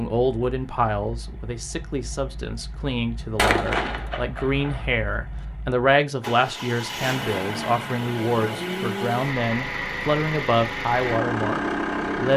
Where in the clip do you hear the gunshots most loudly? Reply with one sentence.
The loudest moment of the gunshots is at 4 seconds.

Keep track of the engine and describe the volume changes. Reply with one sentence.
The volume of the engine goes up.